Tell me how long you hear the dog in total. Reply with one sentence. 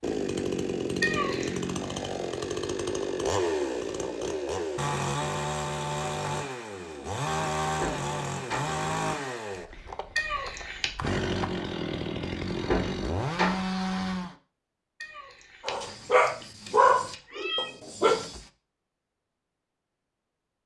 You can hear the dog for 3 seconds altogether.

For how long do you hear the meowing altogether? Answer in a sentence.
You can hear the meowing for 4 seconds altogether.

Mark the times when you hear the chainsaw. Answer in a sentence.
You can hear the chainsaw from 0.0 to 14.3 s.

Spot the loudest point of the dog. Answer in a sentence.
The loudest moment of the dog is at 17 seconds.